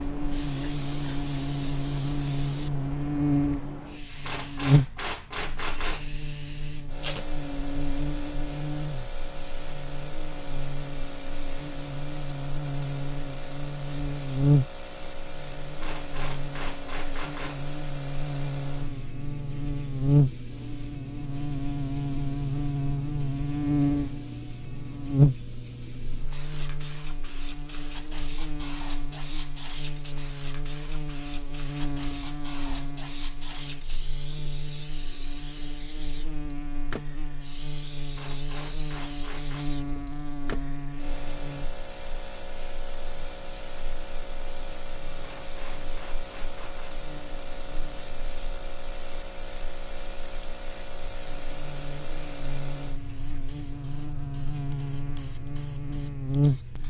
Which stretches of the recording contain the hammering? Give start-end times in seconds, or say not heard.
4.2-6.1, 15.8-17.6, 38.1-39.7, 45.2-47.0.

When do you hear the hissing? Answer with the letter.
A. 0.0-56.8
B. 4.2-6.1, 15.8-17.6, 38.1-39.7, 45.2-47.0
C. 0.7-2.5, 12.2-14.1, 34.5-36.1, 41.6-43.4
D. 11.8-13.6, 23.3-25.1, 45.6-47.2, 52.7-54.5
A.